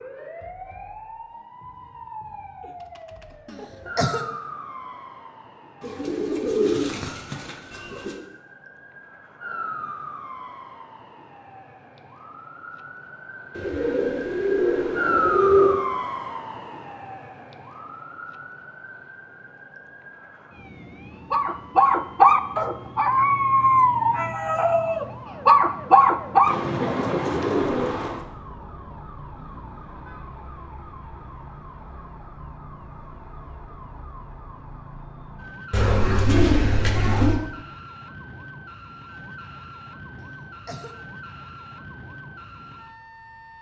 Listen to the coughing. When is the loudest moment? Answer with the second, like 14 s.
4 s.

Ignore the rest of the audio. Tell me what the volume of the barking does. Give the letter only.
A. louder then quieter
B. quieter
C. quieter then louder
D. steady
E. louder
C.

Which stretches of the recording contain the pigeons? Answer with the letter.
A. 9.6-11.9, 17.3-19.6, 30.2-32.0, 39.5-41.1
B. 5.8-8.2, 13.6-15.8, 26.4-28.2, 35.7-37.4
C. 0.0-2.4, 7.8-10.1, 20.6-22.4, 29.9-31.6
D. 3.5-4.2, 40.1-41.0
B.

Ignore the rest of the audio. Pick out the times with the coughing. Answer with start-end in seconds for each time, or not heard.
3.5-4.2, 40.1-41.0.